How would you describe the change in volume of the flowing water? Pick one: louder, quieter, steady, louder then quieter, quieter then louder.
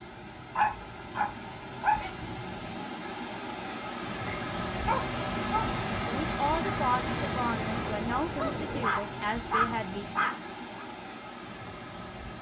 louder then quieter.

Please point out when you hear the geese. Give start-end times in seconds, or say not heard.
6.9-8.9.